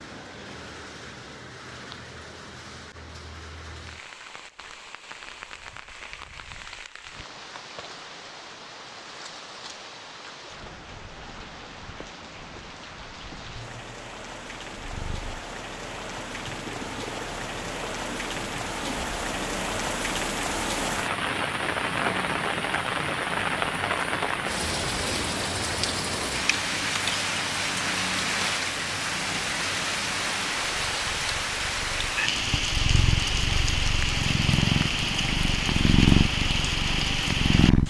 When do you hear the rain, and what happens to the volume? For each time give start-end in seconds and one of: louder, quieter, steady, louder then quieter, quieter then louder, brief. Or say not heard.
0.0-37.8 louder.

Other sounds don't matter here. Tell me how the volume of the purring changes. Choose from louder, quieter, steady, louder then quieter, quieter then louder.
louder.